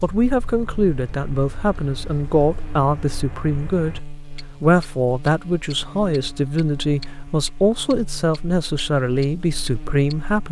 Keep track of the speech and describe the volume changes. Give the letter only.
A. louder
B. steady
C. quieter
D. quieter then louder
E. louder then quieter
B.